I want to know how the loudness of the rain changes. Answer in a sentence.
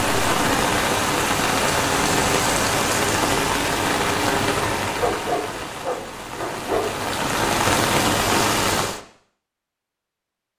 The loudness of the rain goes down, then up.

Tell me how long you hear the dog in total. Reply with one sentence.
You can hear the dog for 2 seconds altogether.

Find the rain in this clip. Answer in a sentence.
You can hear the rain from 0.0 to 9.0 s.